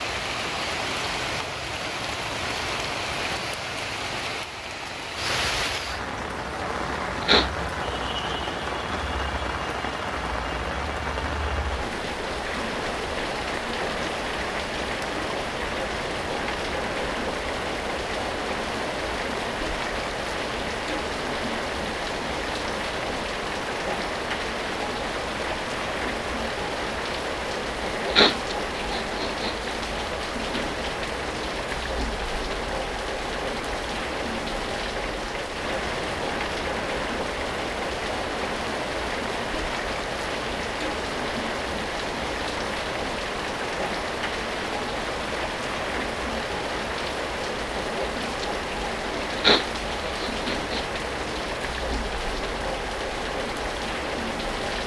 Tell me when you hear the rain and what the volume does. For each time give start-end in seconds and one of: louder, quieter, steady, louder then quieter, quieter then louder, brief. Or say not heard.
0.0-54.8 steady.